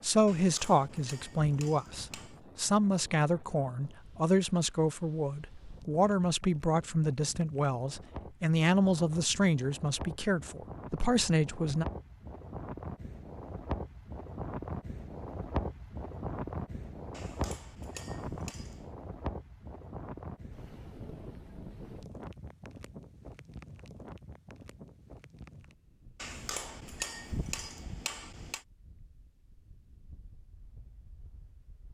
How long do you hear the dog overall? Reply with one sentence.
You can't hear the dog here.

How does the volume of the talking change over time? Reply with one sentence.
The volume of the talking stays about the same.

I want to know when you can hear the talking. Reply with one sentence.
You can hear the talking from 0.0 to 11.8 s.